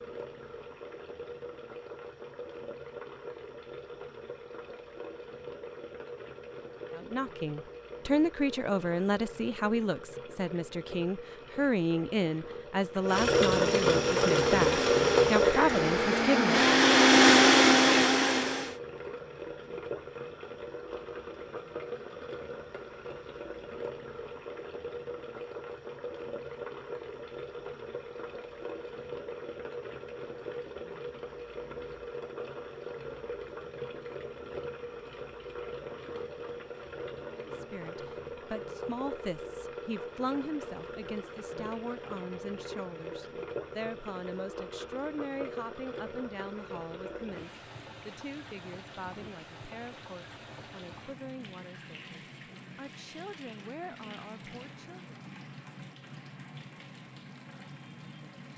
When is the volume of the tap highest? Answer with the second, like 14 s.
15 s.